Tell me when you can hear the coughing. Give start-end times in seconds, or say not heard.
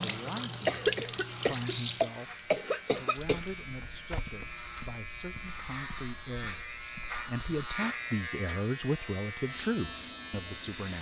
0.7-3.4.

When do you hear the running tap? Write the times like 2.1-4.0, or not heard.
0.0-3.4.